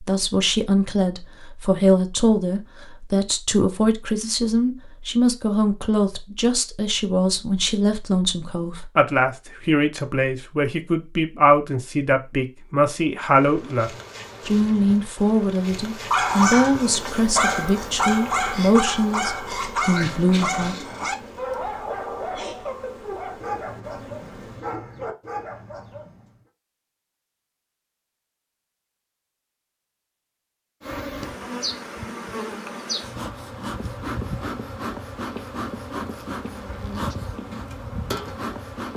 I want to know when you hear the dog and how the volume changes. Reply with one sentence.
You can hear the dog from 16.1 to 26.3 s, getting quieter.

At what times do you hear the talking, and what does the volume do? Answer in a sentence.
The talking can be heard from 0.0 to 20.8 s, at a steady volume.